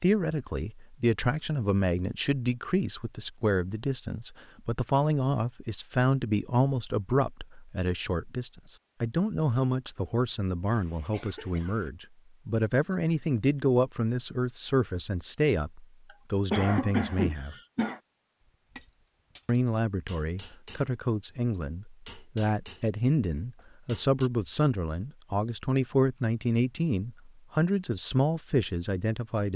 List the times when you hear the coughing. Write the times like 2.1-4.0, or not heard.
10.7-11.9, 16.5-18.0.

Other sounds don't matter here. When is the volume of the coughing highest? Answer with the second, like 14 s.
17 s.